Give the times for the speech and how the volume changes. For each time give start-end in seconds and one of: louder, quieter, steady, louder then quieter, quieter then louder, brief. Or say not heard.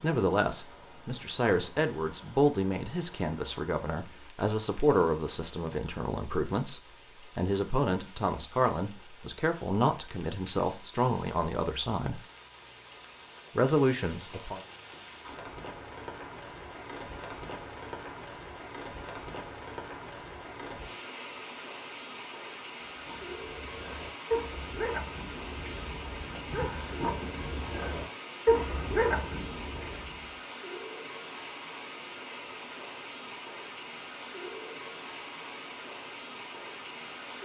0.0-12.2 steady
13.6-14.6 brief.